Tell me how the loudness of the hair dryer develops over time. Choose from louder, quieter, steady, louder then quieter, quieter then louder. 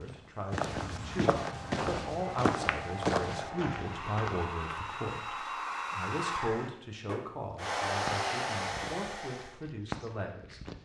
louder.